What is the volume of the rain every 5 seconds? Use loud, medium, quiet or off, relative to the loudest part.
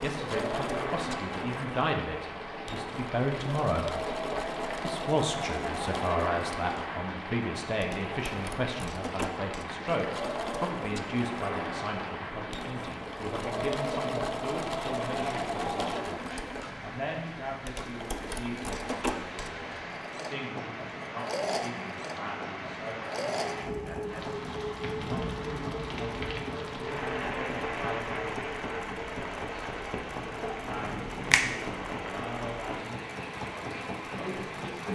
loud, loud, loud, medium, loud, loud, loud.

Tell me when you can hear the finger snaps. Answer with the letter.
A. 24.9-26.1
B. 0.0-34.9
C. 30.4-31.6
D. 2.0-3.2
C.